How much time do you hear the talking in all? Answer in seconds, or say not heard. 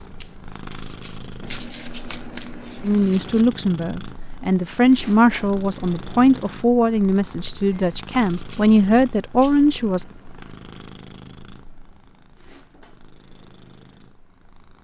7 s.